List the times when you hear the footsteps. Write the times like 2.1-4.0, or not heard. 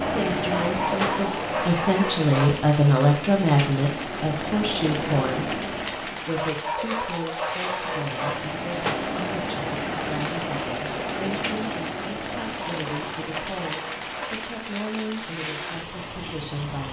not heard.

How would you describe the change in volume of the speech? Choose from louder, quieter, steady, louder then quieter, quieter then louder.
quieter.